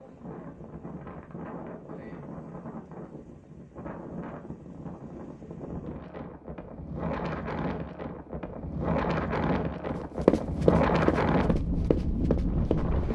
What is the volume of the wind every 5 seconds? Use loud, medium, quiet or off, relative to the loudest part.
quiet, medium, loud.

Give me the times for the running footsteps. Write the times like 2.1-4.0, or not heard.
10.2-13.0.